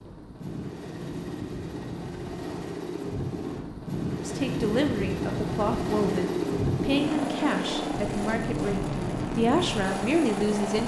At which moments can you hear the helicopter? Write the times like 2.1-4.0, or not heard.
0.0-10.8.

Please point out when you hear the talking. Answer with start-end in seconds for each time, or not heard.
4.2-10.8.